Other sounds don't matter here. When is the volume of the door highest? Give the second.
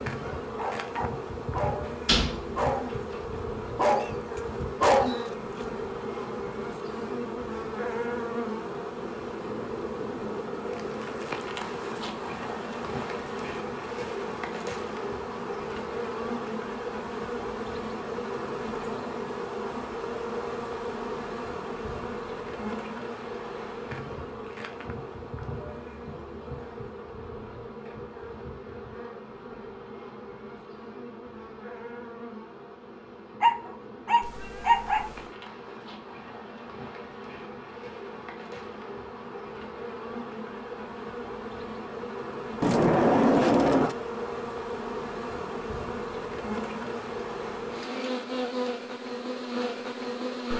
43 s.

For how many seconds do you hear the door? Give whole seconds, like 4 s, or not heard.
2 s.